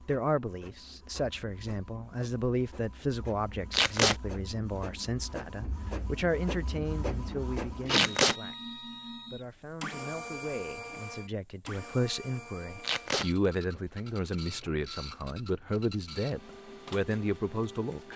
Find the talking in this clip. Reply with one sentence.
You can hear the talking from 0.0 to 18.1 s.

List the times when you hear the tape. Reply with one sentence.
You can hear the tape from 3.7 to 4.2 s, from 7.9 to 8.3 s and from 12.8 to 13.3 s.